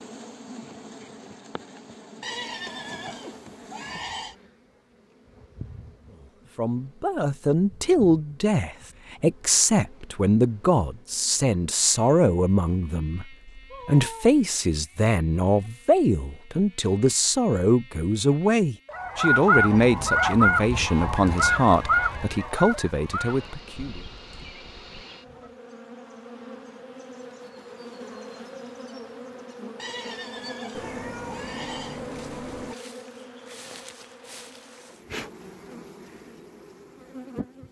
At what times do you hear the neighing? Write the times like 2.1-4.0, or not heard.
2.2-4.3, 29.8-32.0.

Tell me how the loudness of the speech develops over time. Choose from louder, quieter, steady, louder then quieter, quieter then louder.
steady.